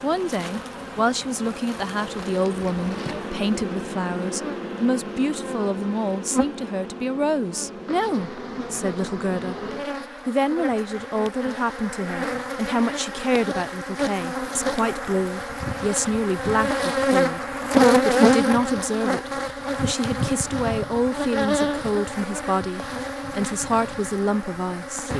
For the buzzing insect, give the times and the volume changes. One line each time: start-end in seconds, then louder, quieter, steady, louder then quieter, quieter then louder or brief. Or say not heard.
0.0-25.1 louder then quieter.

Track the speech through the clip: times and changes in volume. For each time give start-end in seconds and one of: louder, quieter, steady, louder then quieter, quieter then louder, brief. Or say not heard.
0.0-9.6 steady
10.2-25.1 steady.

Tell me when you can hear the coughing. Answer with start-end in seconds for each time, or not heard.
not heard.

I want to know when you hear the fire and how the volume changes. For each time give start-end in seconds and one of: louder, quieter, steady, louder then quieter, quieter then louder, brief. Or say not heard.
not heard.